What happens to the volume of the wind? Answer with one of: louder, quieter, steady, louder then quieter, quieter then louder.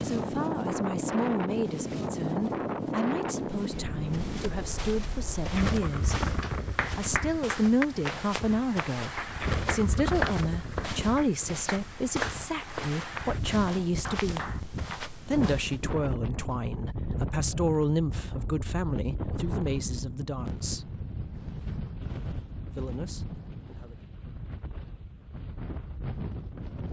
quieter.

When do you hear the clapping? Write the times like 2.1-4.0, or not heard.
6.2-15.1.